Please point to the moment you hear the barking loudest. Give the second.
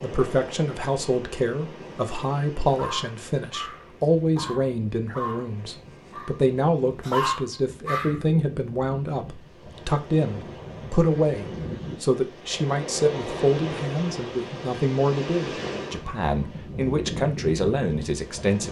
7 s.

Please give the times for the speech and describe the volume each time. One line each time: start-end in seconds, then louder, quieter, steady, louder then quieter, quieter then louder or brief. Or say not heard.
0.0-18.6 steady.